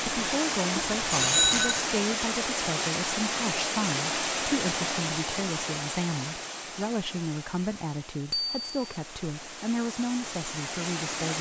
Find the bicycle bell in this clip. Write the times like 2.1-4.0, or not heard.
0.9-1.9, 8.3-9.0.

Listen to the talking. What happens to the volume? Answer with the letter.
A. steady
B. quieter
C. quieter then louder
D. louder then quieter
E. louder
A.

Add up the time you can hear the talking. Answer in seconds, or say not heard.
11 s.